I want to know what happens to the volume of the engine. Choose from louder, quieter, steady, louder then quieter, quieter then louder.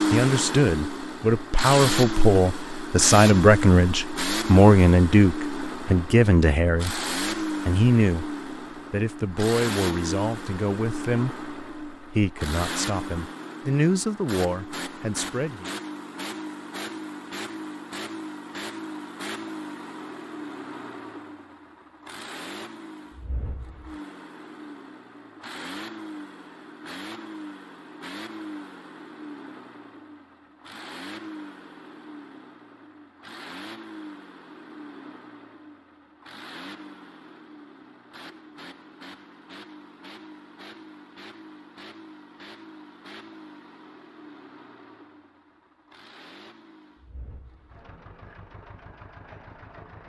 quieter.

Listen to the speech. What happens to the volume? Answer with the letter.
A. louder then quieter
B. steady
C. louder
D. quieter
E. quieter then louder
D.